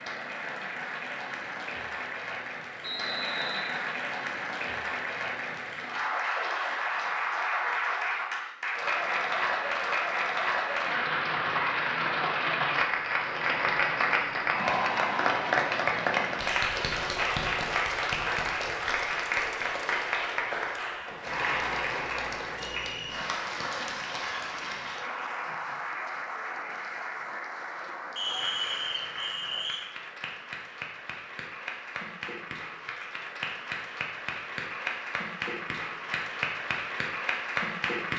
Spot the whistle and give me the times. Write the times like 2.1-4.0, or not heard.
2.8-3.8, 22.8-23.2, 28.1-29.8.